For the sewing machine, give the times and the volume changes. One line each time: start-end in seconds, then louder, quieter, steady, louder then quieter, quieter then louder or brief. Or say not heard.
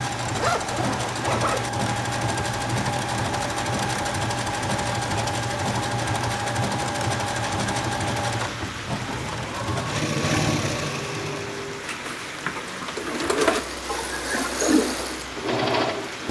0.0-16.2 steady.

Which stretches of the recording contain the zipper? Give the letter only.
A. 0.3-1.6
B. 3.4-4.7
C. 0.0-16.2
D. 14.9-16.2
A.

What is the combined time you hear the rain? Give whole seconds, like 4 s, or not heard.
16 s.